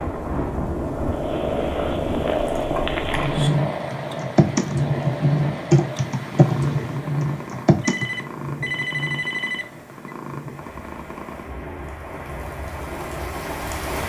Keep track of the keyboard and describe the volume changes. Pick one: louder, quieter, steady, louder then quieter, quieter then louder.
louder then quieter.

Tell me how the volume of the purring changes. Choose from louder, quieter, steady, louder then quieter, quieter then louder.
quieter.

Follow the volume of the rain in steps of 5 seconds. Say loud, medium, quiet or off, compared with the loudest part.
loud, loud, medium.